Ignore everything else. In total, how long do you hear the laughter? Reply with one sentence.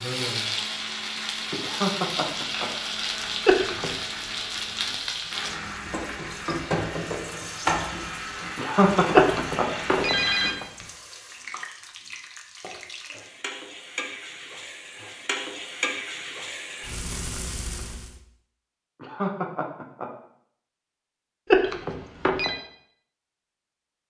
You can hear the laughter for 3 seconds altogether.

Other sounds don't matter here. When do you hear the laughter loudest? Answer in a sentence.
The volume of the laughter peaks at 9 seconds.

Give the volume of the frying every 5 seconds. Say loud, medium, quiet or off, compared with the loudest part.
loud, loud, medium, loud, off.